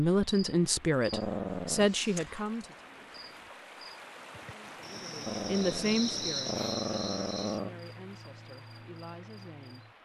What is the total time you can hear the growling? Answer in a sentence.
You can hear the growling for 3 seconds altogether.